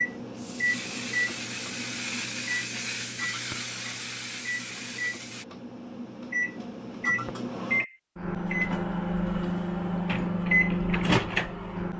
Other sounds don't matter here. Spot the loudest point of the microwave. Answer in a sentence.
The volume of the microwave peaks at 11 seconds.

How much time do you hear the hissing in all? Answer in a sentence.
The hissing can be heard for 5 seconds in total.